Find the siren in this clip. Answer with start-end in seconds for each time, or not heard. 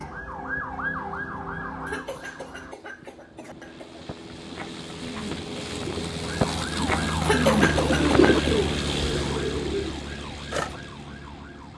0.0-2.8, 6.2-11.7.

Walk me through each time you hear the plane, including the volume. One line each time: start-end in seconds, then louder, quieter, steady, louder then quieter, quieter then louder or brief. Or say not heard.
0.1-11.7 louder then quieter.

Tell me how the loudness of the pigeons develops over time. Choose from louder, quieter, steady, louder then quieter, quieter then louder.
louder then quieter.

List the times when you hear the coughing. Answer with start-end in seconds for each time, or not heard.
1.9-4.0, 7.2-8.4.